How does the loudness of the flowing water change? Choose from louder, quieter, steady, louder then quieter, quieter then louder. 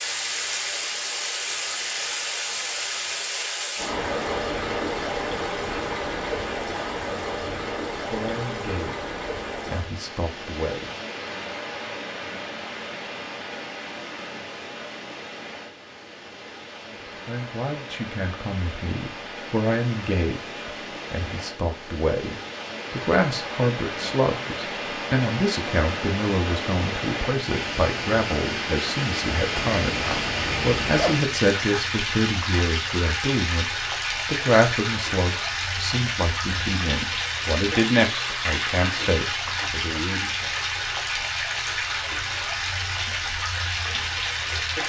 quieter then louder.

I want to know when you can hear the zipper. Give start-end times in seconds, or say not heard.
29.6-31.2.